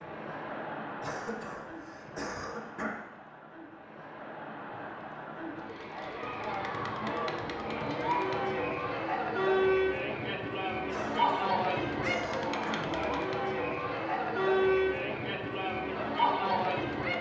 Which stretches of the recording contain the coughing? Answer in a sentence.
You can hear the coughing from 1.0 to 2.9 s and from 10.8 to 12.8 s.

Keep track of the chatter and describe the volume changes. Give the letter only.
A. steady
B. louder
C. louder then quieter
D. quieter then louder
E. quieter
B.